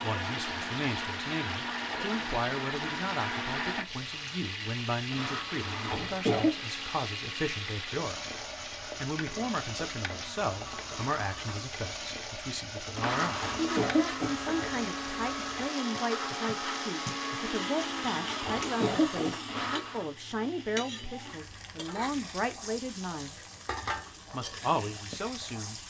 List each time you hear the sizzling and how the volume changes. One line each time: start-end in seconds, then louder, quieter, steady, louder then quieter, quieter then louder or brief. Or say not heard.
0.0-25.8 steady.